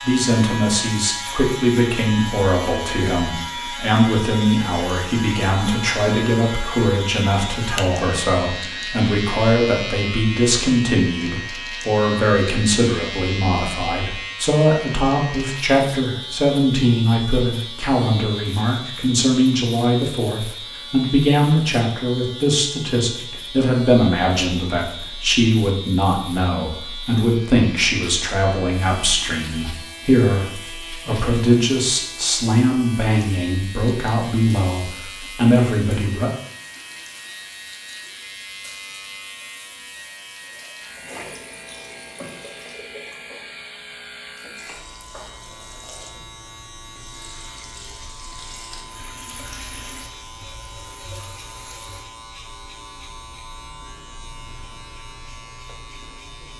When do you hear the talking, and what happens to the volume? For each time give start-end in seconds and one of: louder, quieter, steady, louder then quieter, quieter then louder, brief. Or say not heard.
0.0-36.3 steady.